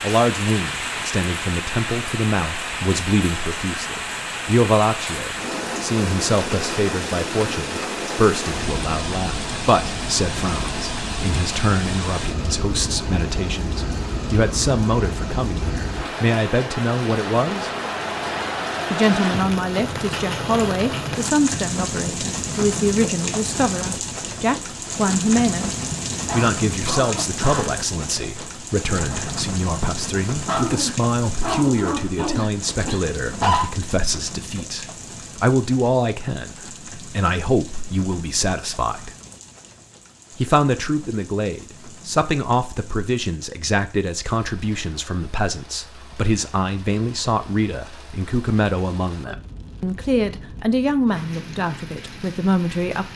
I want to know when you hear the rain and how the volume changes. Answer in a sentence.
You can hear the rain from 0.0 to 53.1 s, getting quieter.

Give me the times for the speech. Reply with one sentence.
You can hear the speech from 0.0 to 17.7 s, from 18.9 to 39.1 s and from 40.4 to 53.1 s.